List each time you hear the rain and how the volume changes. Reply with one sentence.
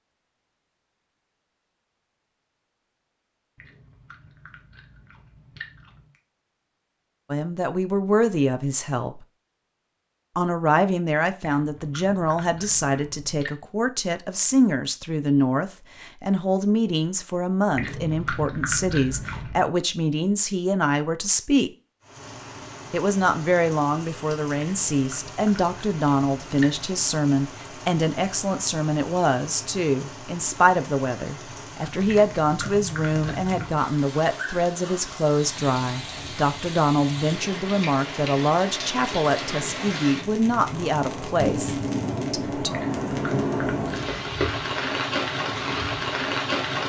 You can hear the rain from 22.0 to 46.8 s, getting louder.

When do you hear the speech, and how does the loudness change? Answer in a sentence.
You can hear the speech briefly from 7.3 to 9.2 s; from 10.3 to 21.7 s, at a steady volume; and from 22.9 to 42.8 s, at a steady volume.